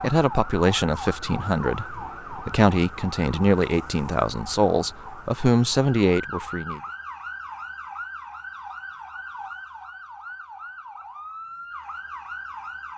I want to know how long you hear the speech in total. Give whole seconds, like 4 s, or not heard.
7 s.